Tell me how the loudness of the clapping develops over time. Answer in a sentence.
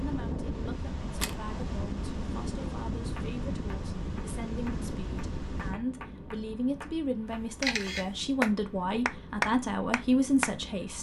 The loudness of the clapping goes up.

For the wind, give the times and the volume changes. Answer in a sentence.
The wind can be heard from 0.0 to 10.9 s, getting quieter.